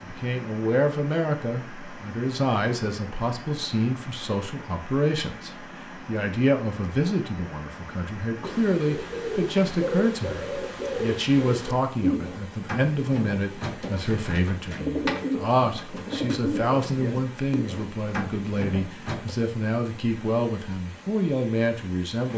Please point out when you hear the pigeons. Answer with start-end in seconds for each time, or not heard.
8.4-19.4.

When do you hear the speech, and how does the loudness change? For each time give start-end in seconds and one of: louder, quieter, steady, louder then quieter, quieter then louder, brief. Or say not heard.
0.0-22.3 steady.